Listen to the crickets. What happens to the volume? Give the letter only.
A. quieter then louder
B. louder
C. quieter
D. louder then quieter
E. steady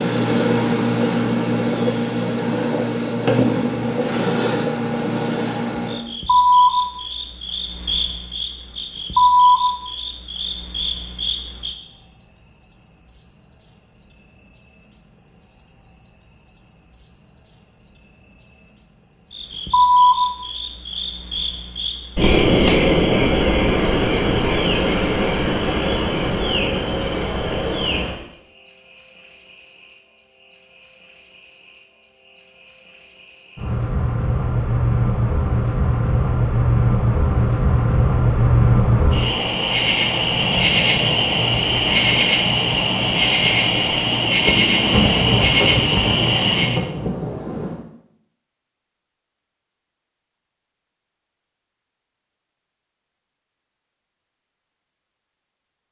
A.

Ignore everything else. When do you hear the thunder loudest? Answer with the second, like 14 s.
45 s.